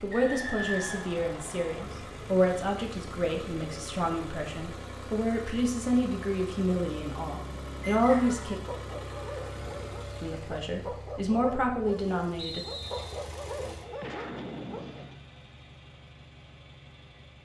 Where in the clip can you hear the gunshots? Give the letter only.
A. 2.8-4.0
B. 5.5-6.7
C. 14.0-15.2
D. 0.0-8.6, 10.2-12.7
C.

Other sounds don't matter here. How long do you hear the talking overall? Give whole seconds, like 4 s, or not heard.
11 s.